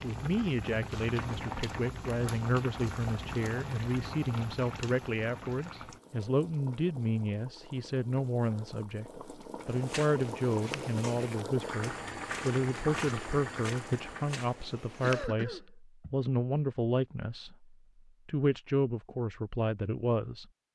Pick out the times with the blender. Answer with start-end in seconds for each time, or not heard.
not heard.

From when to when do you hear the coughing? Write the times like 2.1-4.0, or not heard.
15.0-16.1.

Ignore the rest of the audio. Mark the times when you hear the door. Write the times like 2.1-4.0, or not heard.
not heard.